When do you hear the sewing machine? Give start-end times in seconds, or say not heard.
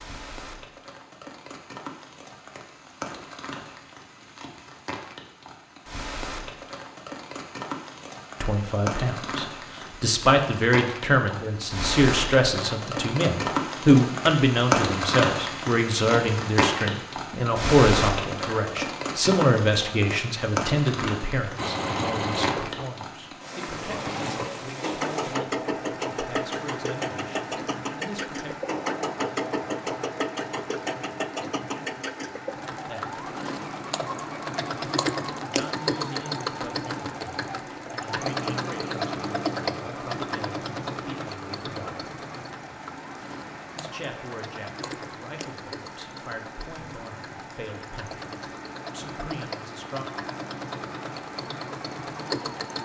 21.6-52.8.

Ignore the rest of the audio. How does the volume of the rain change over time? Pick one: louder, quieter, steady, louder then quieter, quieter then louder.
louder then quieter.